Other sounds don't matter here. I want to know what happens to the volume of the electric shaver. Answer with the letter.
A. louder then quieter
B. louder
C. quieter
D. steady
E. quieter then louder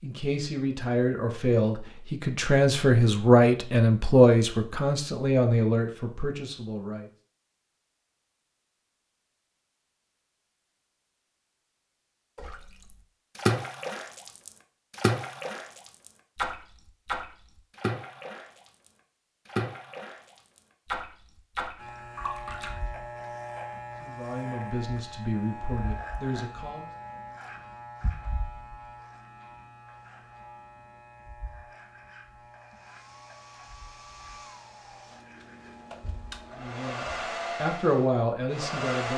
C.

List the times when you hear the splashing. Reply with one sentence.
The splashing can be heard from 12.3 to 22.8 s.